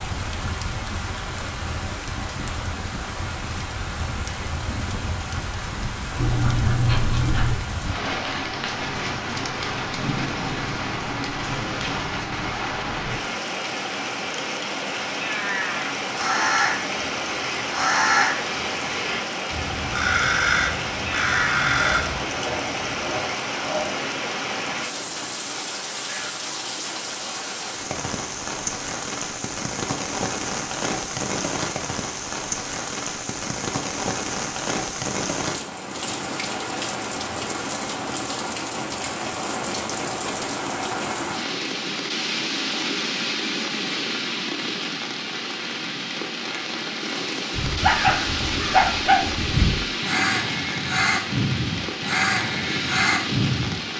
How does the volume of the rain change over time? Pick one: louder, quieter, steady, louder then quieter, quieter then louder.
steady.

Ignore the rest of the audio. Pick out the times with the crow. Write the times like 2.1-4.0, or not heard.
16.1-22.2, 47.5-53.8.